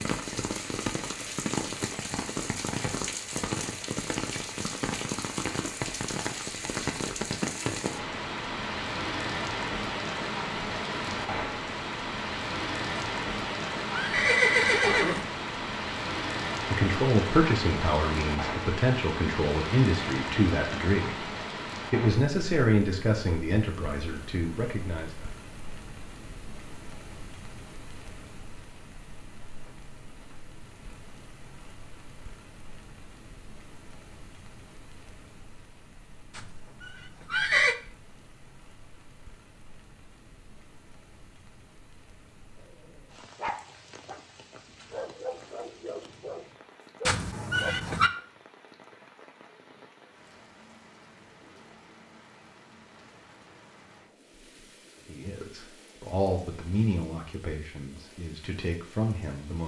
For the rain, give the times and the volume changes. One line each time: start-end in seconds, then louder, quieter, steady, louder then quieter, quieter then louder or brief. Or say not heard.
0.0-59.6 quieter.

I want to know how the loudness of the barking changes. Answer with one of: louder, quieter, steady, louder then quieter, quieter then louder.
quieter then louder.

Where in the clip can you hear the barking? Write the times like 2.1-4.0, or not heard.
42.5-47.8.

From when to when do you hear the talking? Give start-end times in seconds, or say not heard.
16.6-21.2, 21.9-25.3, 55.0-59.6.